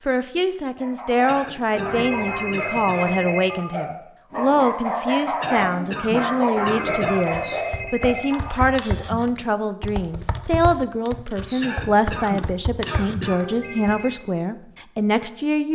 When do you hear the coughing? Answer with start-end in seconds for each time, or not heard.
1.2-3.2, 5.4-7.4, 11.6-13.4.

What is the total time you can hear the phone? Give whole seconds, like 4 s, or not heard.
5 s.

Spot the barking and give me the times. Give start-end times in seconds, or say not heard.
0.8-9.1.